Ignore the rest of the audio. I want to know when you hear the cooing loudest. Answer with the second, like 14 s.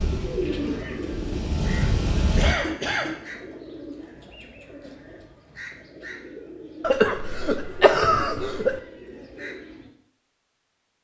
1 s.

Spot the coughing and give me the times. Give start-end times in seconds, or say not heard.
2.1-3.3, 6.8-8.8.